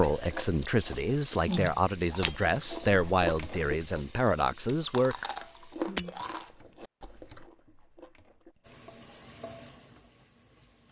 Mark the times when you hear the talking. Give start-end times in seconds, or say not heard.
0.0-5.2.